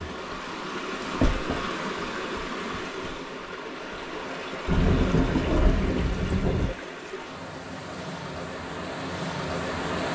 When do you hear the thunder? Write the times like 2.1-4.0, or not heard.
4.7-6.7.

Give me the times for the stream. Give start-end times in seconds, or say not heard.
0.0-10.1.